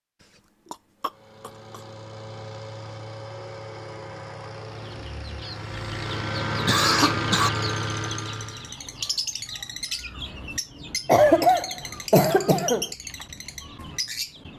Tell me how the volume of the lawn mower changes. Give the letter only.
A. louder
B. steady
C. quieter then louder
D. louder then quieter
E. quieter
A.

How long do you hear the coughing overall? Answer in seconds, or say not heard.
4 s.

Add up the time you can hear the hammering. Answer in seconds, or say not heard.
not heard.